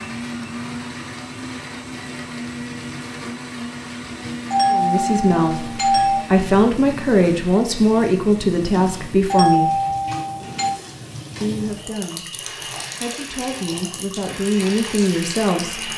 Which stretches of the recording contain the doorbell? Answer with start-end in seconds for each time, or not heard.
4.5-6.2, 9.3-10.8.